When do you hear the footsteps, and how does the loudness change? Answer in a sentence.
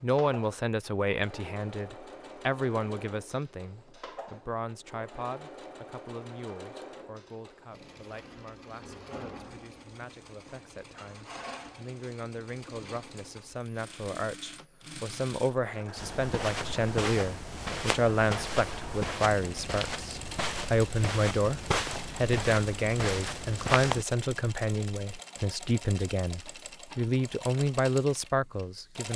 The footsteps can be heard from 15.9 to 24.1 s, at a steady volume.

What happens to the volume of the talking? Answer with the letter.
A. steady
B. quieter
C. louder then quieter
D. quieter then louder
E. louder
D.